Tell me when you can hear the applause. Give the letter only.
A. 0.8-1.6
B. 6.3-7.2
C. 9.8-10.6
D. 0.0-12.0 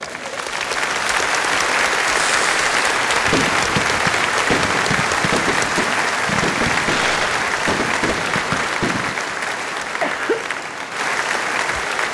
D.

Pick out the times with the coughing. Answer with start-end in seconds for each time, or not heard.
9.8-10.6.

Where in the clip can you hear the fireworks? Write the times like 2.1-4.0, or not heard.
2.1-9.2.